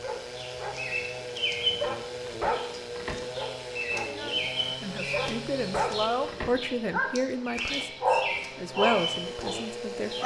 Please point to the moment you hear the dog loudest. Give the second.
8 s.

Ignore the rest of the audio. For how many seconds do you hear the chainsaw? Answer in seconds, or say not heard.
10 s.